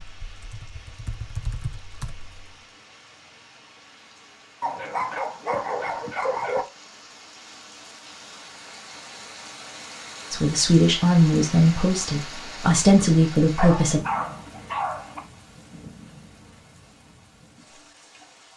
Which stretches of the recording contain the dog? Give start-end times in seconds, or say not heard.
4.6-6.7, 13.6-15.2.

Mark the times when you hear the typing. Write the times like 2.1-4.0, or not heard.
0.0-2.5.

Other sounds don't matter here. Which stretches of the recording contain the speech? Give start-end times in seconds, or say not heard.
10.3-14.0.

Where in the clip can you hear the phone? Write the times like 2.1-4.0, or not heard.
not heard.